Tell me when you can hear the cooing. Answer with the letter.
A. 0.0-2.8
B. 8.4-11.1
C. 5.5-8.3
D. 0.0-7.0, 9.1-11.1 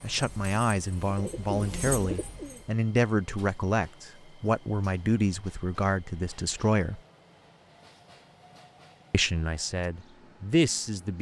A.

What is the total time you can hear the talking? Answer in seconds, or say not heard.
9 s.